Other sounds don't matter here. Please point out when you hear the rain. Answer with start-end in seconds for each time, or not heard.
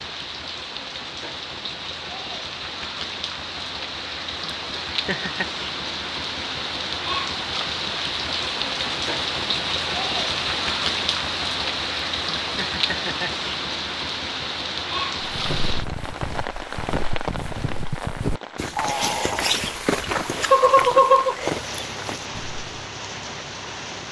0.0-24.0.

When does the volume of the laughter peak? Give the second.
21 s.